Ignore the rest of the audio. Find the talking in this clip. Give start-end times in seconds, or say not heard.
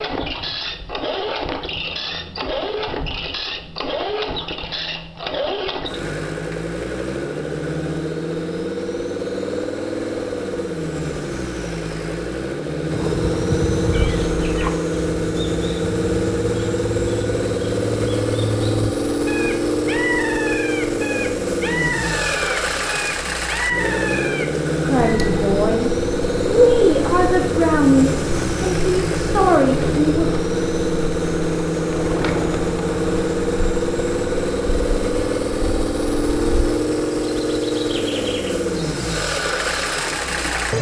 24.8-30.3.